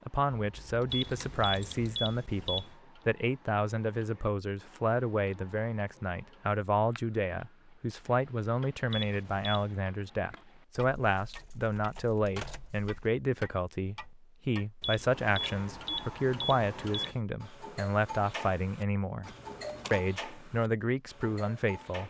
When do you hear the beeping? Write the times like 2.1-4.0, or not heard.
0.9-2.8, 8.9-9.7, 14.8-17.2.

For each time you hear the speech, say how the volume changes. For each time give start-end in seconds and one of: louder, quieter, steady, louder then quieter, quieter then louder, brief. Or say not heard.
0.1-19.3 steady
19.9-22.0 brief.